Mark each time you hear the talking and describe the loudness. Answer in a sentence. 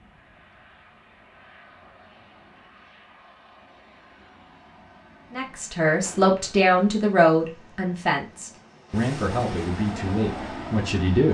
You can hear the talking from 5.3 to 11.2 s, getting quieter.